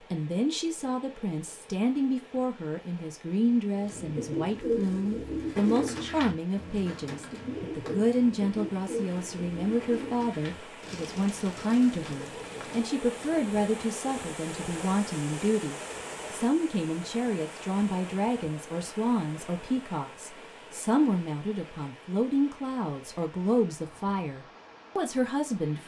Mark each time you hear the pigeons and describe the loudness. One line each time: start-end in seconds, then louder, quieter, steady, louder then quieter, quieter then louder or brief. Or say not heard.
3.7-13.2 quieter.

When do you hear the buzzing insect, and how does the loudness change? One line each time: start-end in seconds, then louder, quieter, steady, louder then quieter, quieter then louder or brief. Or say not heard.
not heard.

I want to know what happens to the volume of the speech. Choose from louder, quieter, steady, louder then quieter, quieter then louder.
steady.